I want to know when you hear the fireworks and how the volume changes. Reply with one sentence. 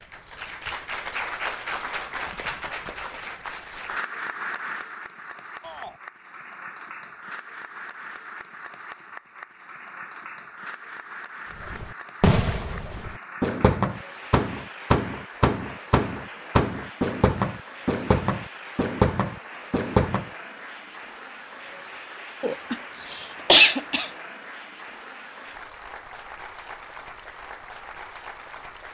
The fireworks can be heard from 11.6 to 20.3 s, at a steady volume.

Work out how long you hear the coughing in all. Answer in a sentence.
The coughing can be heard for 2 seconds in total.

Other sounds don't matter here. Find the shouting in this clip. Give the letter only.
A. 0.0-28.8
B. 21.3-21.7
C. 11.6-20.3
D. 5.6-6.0
D.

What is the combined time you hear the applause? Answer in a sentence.
You can hear the applause for 29 seconds altogether.